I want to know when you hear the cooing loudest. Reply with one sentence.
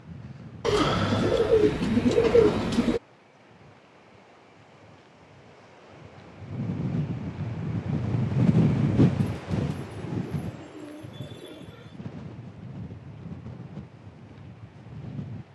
The loudest moment of the cooing is at 2 seconds.